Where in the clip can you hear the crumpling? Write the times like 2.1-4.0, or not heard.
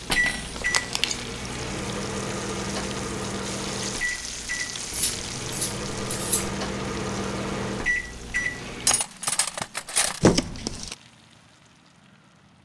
0.6-1.3, 10.2-10.9.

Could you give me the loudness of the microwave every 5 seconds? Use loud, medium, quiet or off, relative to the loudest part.
loud, loud, off.